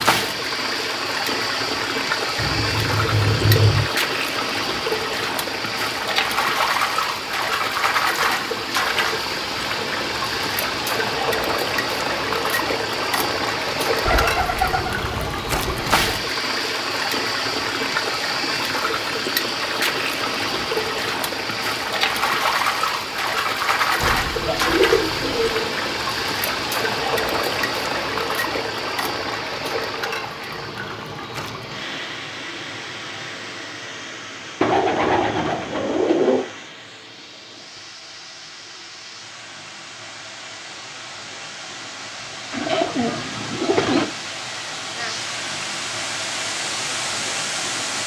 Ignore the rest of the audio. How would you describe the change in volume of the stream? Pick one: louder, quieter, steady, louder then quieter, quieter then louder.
quieter.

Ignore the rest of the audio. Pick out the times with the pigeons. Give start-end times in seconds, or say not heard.
2.4-3.9, 14.1-16.1, 24.0-25.8, 34.6-36.5, 42.5-44.0.